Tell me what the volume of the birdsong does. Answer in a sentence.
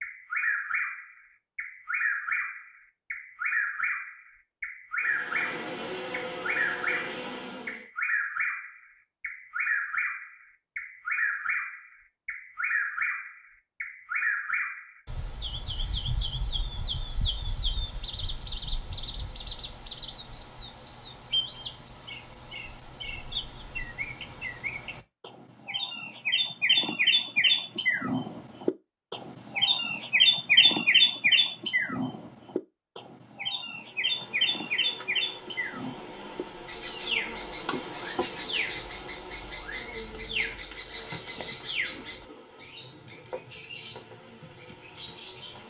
The loudness of the birdsong goes up, then down.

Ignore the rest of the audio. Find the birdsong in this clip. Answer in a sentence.
You can hear the birdsong from 0.0 to 45.6 s.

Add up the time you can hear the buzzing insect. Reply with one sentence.
The buzzing insect can be heard for 15 seconds in total.